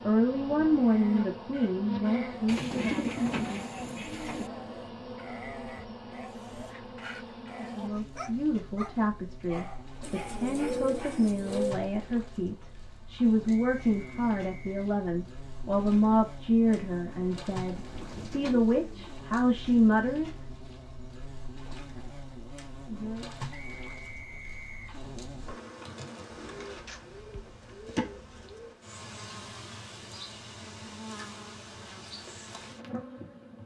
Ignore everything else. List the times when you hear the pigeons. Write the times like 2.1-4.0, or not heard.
2.5-4.5, 10.0-11.8, 17.8-19.2, 26.3-28.8.